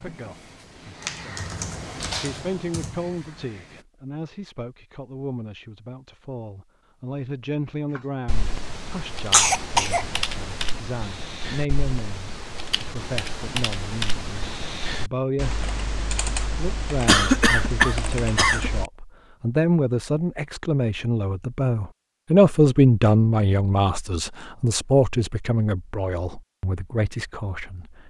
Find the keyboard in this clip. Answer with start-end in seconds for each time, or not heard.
0.0-3.9, 8.0-18.9.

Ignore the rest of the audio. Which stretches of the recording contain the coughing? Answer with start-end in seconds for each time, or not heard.
9.3-10.1, 17.1-18.7.